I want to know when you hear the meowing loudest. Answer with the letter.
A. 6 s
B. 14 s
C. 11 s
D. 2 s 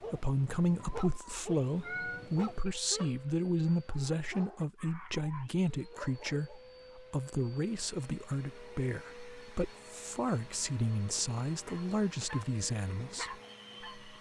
D.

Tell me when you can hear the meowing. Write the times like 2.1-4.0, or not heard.
0.8-2.2.